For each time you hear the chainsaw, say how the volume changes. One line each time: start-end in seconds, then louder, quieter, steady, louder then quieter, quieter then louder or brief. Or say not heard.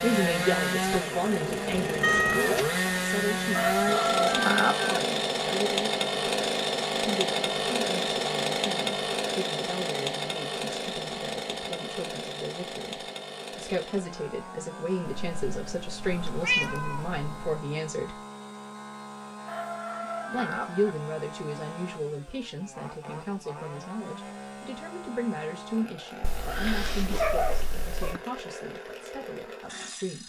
0.0-30.2 quieter.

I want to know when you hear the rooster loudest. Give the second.
5 s.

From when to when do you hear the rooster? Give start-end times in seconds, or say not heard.
3.5-5.0, 19.4-20.9.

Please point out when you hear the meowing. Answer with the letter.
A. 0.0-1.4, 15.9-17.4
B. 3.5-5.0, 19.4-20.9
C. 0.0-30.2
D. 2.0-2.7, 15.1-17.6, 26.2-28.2
D.